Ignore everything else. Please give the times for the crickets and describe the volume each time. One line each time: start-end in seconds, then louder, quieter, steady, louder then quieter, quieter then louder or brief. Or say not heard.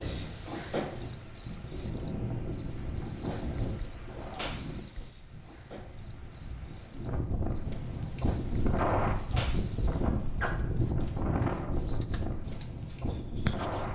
0.0-13.9 quieter then louder.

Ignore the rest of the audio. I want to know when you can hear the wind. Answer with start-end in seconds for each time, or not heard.
0.0-13.9.